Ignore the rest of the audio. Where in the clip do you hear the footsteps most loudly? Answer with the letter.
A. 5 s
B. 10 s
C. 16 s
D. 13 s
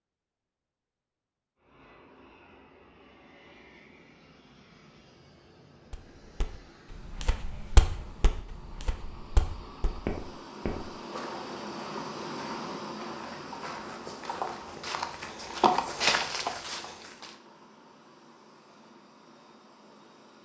C.